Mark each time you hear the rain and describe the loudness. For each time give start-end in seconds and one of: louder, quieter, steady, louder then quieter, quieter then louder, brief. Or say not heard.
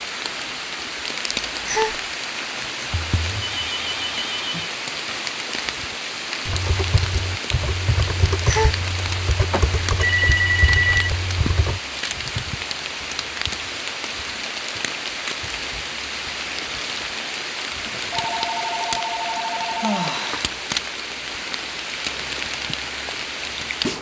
0.0-23.9 steady.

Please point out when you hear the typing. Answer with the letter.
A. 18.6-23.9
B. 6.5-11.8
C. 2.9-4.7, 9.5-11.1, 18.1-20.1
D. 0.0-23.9
B.